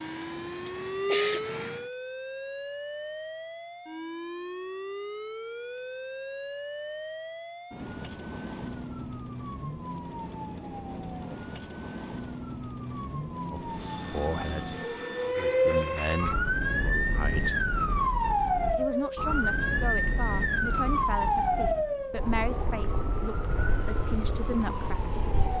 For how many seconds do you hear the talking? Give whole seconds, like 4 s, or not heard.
10 s.